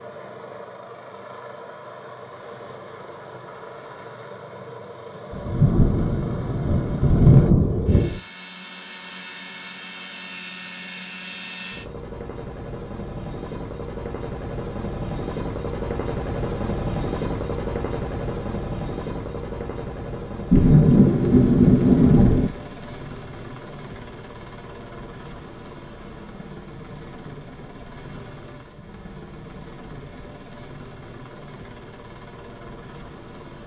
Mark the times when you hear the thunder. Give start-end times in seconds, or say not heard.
5.3-8.2, 20.5-22.5.